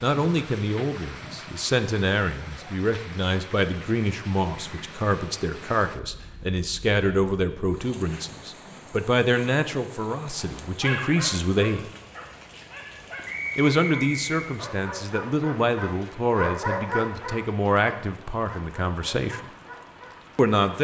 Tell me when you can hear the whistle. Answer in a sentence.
The whistle can be heard from 13.2 to 14.5 s.